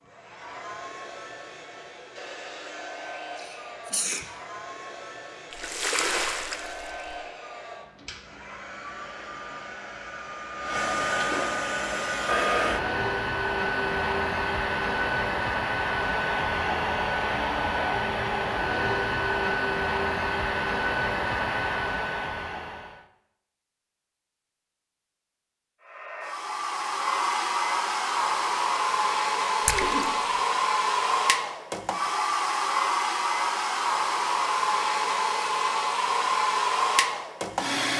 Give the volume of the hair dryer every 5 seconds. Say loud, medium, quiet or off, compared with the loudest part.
quiet, quiet, loud, loud, loud, loud, loud, loud.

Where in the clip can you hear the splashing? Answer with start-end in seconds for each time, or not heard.
5.5-7.0, 29.6-30.1.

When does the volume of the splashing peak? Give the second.
6 s.